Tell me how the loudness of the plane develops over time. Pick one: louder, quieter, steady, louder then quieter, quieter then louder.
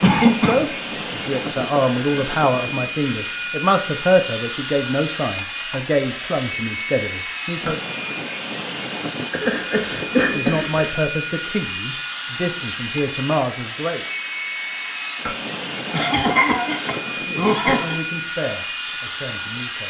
steady.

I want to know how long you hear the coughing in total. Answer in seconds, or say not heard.
4 s.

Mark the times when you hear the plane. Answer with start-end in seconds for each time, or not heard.
0.0-19.8.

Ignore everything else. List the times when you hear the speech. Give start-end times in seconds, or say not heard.
0.0-8.0, 10.3-14.0, 17.1-19.8.